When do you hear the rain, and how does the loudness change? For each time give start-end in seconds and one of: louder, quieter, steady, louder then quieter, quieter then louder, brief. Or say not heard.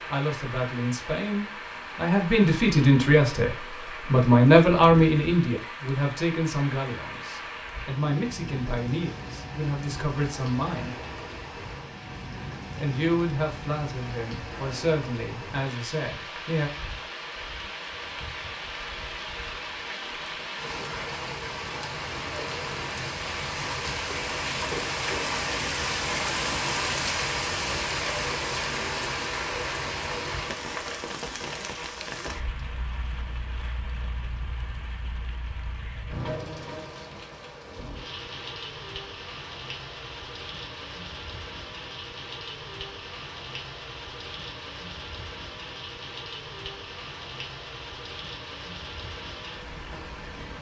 0.0-50.5 louder then quieter.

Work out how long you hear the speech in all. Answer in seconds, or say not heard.
15 s.